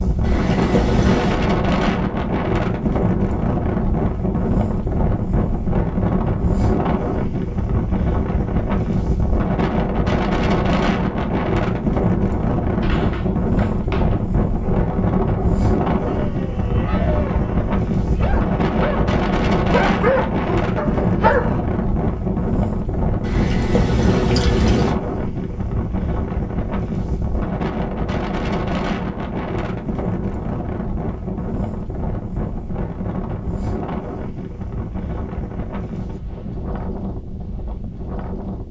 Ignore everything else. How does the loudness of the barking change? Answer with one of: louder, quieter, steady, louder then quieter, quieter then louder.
louder.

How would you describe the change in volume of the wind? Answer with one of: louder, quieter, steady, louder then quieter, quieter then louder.
quieter.